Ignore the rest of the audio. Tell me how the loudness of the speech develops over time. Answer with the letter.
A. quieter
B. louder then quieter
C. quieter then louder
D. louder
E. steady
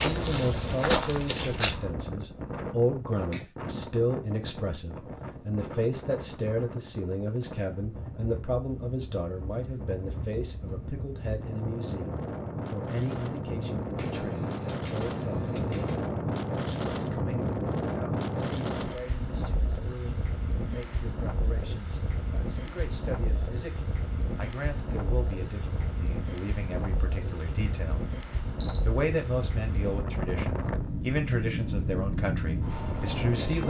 C.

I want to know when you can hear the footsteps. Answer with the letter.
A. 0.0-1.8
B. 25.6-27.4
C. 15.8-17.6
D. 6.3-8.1
A.